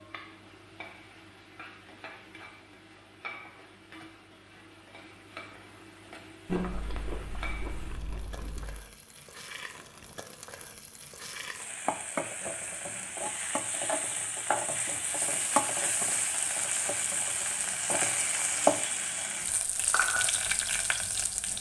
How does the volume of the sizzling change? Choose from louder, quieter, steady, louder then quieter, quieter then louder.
louder.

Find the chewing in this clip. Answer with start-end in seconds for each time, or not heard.
6.5-8.8.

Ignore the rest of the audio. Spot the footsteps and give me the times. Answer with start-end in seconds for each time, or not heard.
not heard.